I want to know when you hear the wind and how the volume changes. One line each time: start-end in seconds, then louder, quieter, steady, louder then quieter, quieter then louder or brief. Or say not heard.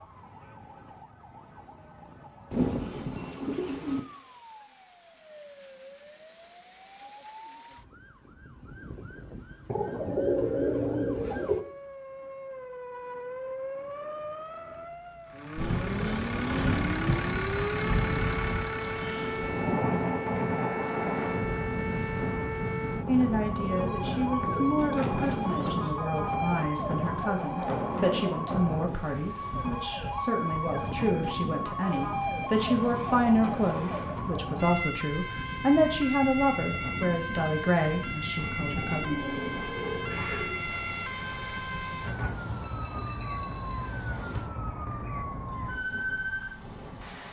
15.6-47.2 quieter.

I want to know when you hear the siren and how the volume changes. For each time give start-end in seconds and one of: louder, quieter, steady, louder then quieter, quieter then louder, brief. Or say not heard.
0.0-47.2 louder.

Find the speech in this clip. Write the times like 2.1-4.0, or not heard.
23.1-39.1.